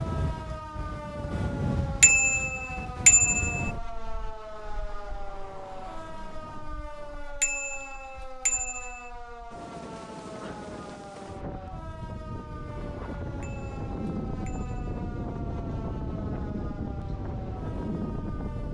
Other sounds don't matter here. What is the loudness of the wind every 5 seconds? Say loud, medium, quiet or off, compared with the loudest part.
loud, quiet, loud, loud.